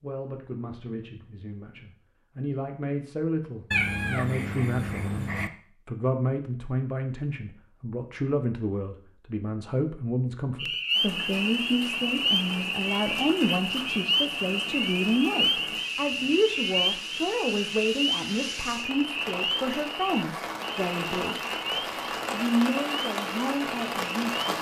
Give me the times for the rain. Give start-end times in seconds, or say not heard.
10.9-24.5.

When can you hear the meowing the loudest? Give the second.
4 s.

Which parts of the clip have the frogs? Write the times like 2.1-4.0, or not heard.
10.6-24.4.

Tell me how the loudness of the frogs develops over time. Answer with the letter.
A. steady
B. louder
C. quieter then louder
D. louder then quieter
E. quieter
E.